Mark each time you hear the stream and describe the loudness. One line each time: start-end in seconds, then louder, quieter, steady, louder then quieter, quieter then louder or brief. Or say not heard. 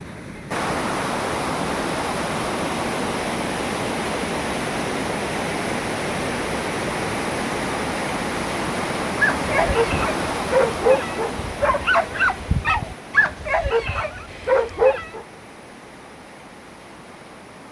0.0-17.6 quieter.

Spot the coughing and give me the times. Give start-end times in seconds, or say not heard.
not heard.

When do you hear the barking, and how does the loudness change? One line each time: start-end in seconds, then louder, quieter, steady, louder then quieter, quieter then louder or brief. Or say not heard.
9.2-15.2 steady.